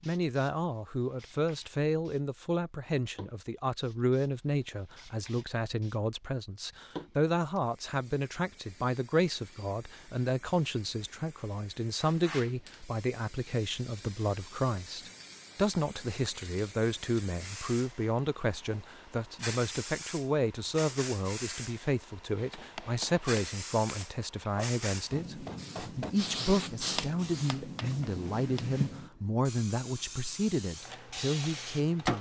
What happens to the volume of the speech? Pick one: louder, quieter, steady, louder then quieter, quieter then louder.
steady.